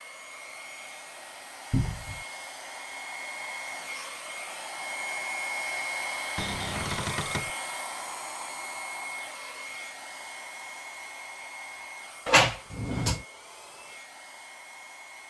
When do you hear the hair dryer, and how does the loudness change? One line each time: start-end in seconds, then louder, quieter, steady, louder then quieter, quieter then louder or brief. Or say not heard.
0.0-15.2 louder then quieter.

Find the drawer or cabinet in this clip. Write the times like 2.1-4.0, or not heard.
1.7-2.2, 6.3-7.5, 12.2-13.2.